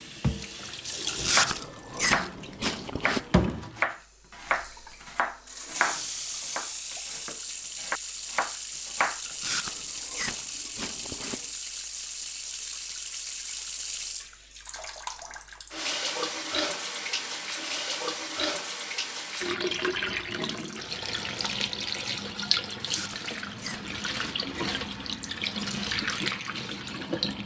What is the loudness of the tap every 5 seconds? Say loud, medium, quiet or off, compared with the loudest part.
loud, medium, medium, loud, loud, loud.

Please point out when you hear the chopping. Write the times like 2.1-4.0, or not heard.
1.2-9.5.